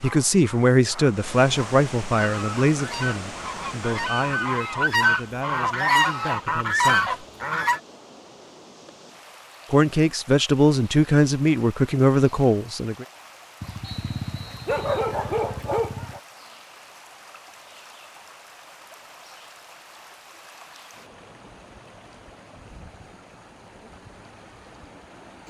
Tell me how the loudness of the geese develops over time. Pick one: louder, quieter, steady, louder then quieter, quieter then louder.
louder.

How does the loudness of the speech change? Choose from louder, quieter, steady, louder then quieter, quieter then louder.
quieter then louder.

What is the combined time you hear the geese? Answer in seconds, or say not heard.
6 s.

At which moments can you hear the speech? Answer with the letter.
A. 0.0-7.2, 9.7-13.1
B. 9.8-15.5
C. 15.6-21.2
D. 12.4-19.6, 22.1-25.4
A.